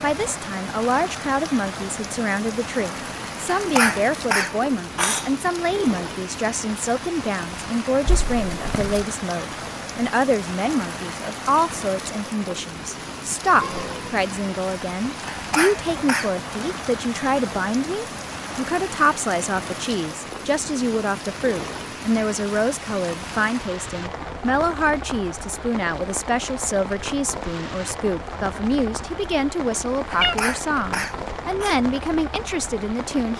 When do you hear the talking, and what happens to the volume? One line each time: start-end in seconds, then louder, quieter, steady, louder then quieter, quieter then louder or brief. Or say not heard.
0.0-33.3 steady.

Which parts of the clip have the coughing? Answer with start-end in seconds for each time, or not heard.
3.5-5.3, 15.2-16.4, 30.1-31.8.